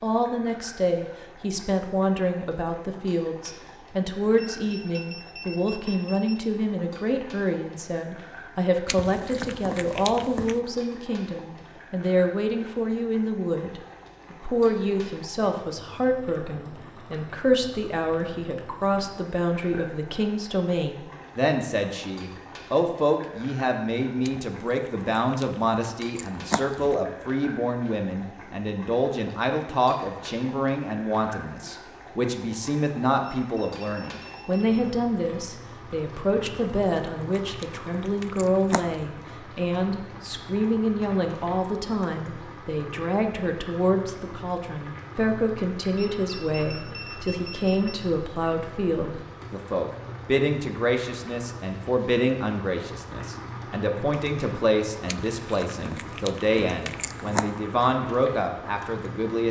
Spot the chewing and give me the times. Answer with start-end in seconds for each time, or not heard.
8.8-10.6, 24.2-26.9, 36.5-39.1, 55.0-57.5.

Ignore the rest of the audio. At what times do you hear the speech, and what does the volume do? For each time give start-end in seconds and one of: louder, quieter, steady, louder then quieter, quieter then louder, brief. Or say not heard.
0.0-59.4 steady.